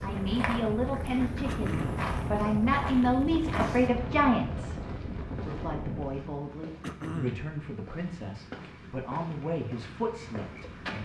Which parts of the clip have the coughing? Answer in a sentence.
The coughing can be heard from 1.4 to 2.1 s and from 6.8 to 7.5 s.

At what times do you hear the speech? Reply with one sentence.
The speech can be heard from 0.0 to 10.9 s.